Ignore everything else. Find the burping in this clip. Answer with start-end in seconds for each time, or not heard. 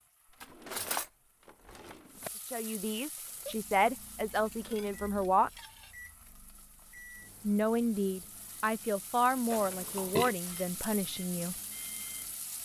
9.5-10.3.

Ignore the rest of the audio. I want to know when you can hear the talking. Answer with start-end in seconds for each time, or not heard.
2.5-5.5, 7.4-11.6.